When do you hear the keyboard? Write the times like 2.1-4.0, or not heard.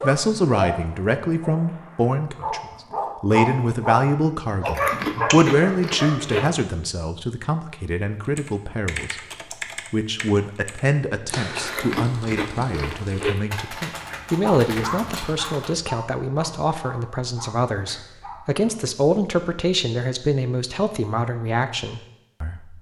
8.2-15.8.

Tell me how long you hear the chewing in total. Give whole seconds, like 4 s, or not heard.
4 s.